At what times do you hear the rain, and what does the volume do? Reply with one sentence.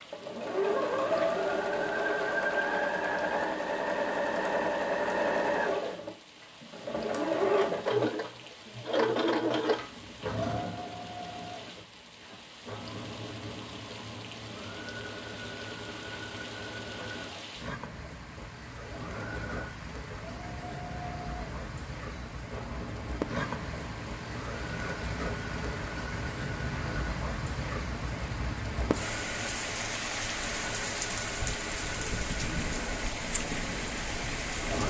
You can hear the rain from 0.0 to 34.8 s, getting louder.